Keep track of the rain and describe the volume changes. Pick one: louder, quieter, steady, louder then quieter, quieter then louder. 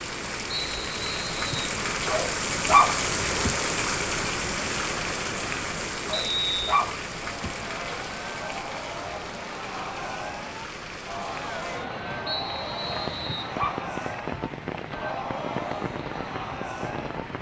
quieter.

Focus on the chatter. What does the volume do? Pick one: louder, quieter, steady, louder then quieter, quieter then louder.
steady.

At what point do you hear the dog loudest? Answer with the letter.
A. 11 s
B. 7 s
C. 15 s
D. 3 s
D.